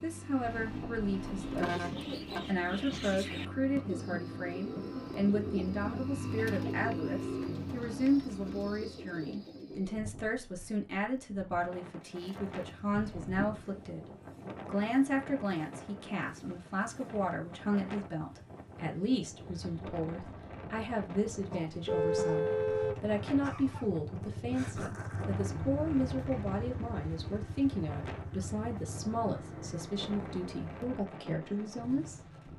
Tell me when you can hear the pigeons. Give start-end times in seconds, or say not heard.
1.3-10.1.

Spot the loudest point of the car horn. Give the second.
22 s.